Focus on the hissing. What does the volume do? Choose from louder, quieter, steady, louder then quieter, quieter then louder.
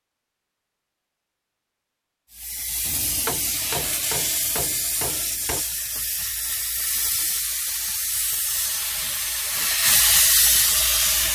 louder.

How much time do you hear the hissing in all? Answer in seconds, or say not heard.
9 s.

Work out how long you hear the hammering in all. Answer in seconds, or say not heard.
3 s.